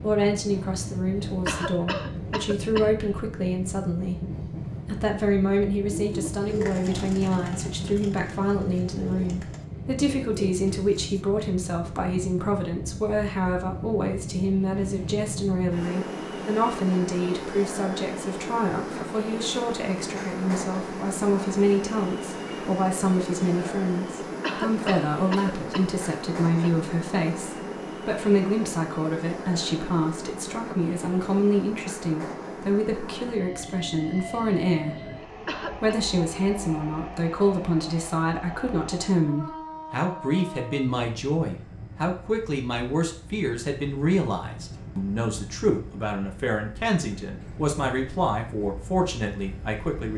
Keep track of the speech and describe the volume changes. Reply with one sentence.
The volume of the speech stays about the same.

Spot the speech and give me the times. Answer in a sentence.
The speech can be heard from 0.0 to 50.1 s.